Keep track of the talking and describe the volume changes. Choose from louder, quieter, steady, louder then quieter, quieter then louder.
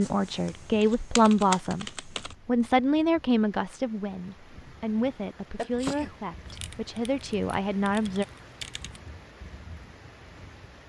quieter.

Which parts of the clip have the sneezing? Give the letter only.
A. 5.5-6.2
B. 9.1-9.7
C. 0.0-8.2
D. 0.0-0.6
A.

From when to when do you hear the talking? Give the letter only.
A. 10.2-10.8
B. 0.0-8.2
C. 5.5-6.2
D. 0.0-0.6
B.